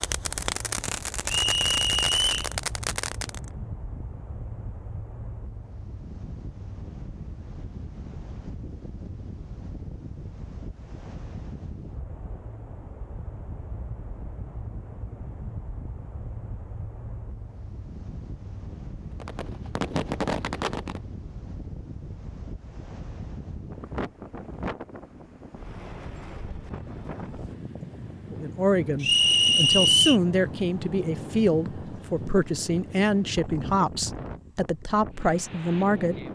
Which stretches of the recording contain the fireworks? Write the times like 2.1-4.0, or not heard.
0.0-3.5, 19.2-21.0.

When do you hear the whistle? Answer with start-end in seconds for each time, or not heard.
1.4-2.5, 29.0-30.2.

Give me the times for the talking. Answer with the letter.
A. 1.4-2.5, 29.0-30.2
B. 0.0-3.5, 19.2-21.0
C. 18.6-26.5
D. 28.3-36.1
D.